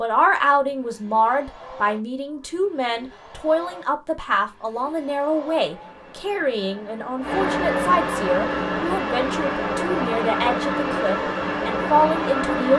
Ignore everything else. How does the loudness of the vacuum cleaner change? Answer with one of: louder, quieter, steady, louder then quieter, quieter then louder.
louder.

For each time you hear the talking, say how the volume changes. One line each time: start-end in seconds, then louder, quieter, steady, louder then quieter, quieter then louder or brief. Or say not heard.
0.0-12.7 steady.